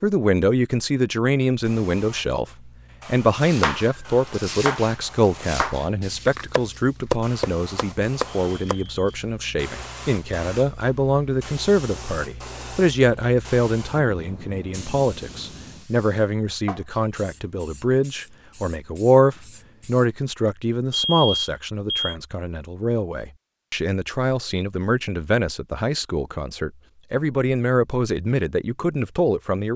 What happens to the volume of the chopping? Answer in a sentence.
The loudness of the chopping goes up.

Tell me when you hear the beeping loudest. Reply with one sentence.
The loudest moment of the beeping is at 21 seconds.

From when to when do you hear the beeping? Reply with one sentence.
You can hear the beeping from 8.3 to 9.2 s and from 20.9 to 22.1 s.